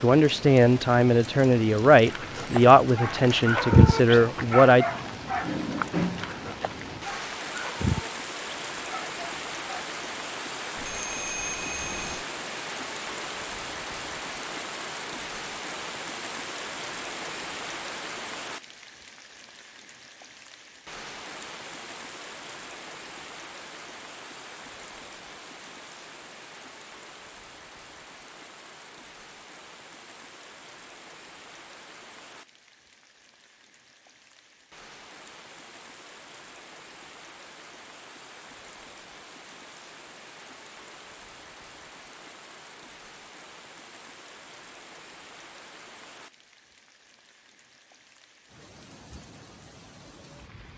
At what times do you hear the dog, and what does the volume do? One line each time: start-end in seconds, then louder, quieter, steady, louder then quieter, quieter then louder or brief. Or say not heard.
2.1-9.8 quieter.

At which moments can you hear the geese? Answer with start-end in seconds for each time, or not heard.
not heard.